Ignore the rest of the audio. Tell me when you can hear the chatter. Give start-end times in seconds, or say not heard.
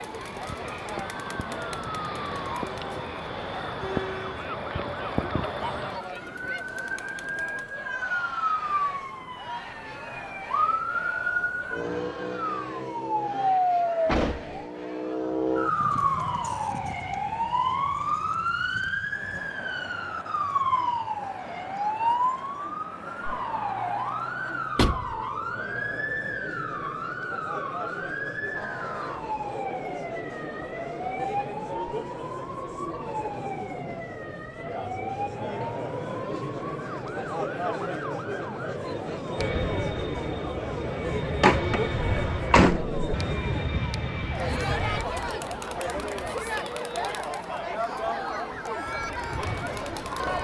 0.0-50.4.